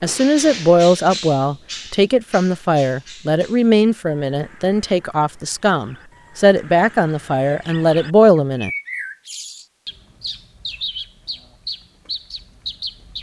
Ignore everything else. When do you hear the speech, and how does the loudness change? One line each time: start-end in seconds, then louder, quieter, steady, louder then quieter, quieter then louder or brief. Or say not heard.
0.0-8.7 steady.